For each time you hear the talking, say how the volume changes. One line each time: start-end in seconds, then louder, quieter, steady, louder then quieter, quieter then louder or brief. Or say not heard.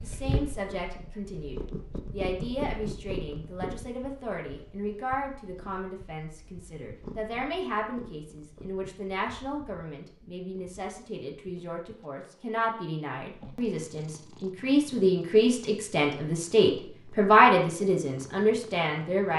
0.0-19.3 louder.